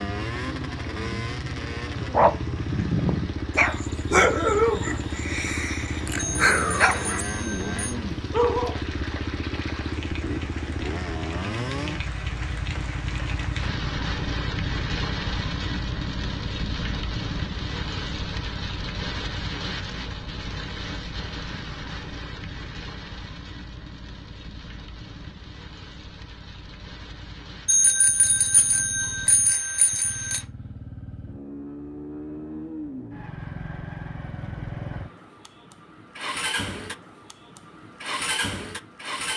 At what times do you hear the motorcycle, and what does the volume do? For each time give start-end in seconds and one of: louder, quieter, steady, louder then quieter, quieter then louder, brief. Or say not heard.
0.0-39.3 quieter then louder.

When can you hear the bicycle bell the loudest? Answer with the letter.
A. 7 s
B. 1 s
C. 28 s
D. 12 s
C.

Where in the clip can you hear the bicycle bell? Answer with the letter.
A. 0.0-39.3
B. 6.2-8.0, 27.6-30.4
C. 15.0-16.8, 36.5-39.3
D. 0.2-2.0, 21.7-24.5
B.